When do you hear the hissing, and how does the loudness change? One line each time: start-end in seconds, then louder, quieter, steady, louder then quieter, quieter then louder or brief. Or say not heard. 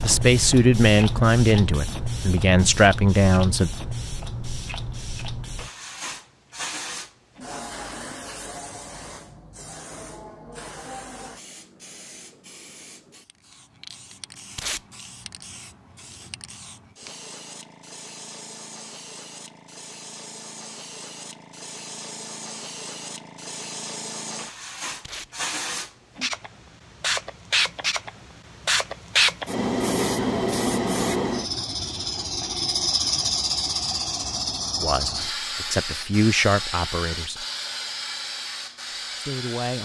0.0-39.8 quieter then louder.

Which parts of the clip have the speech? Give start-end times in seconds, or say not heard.
0.0-3.7, 34.8-37.5, 39.1-39.8.